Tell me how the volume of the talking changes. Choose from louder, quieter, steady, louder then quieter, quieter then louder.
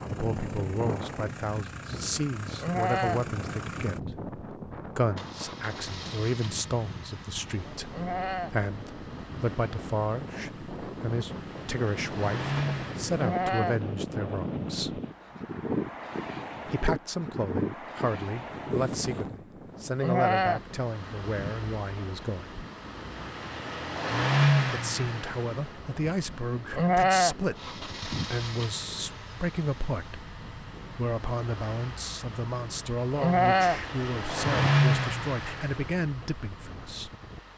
steady.